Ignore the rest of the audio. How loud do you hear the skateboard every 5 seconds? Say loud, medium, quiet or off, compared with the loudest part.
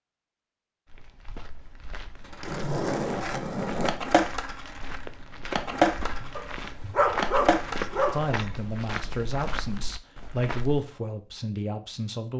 loud, loud, off.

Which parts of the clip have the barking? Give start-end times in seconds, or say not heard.
6.3-8.3.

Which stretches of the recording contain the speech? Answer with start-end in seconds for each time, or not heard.
8.1-12.3.